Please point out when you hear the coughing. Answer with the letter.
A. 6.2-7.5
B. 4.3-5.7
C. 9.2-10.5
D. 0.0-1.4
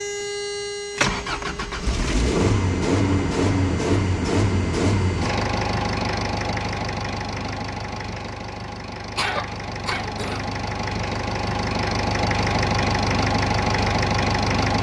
C.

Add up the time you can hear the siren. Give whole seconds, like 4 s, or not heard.
not heard.